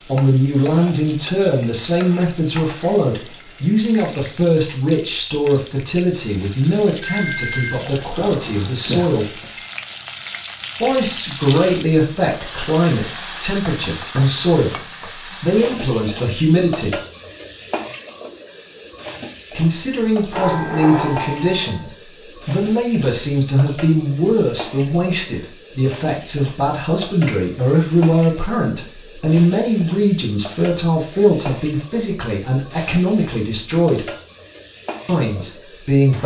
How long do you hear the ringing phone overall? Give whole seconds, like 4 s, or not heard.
4 s.